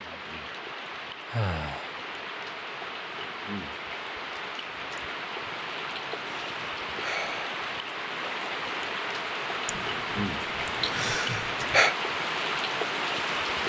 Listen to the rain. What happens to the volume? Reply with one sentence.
The loudness of the rain goes up.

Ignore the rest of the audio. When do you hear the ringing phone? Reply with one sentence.
The ringing phone can't be heard in this clip.